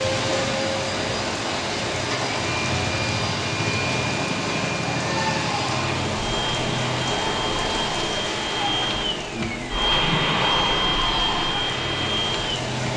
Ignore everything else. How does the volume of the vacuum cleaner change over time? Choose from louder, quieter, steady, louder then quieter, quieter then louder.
louder.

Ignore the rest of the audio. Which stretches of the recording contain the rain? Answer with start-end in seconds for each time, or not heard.
0.0-12.9.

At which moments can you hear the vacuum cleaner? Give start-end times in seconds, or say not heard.
0.0-12.7.